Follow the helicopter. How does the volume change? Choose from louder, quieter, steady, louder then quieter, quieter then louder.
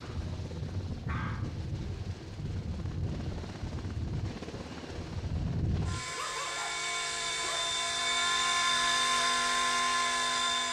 louder.